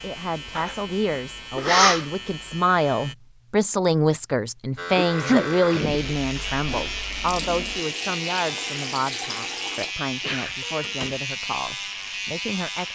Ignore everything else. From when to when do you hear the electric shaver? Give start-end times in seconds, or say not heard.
0.0-3.1, 4.8-12.9.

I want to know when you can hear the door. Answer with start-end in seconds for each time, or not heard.
10.8-11.2.